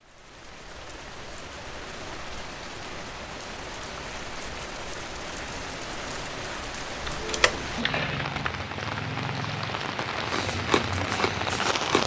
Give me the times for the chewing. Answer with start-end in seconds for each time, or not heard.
10.2-12.0.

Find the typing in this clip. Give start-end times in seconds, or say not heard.
7.0-8.6.